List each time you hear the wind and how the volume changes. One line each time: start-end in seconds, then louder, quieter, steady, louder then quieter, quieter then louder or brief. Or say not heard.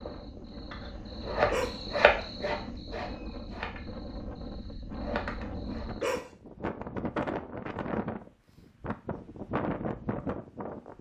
0.0-10.9 louder.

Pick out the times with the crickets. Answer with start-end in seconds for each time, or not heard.
0.0-6.2.